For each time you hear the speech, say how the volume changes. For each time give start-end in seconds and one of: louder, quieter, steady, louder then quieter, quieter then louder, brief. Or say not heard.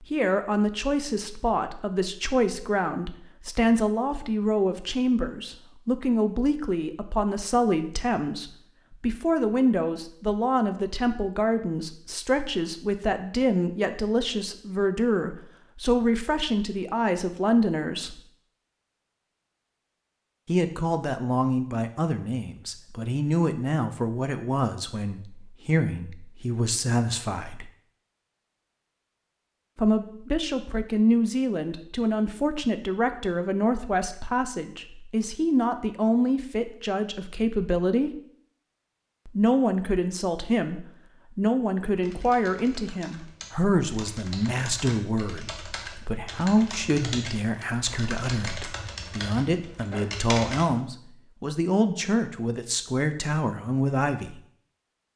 0.0-18.2 steady
20.4-27.7 steady
29.8-38.2 steady
39.2-54.4 steady.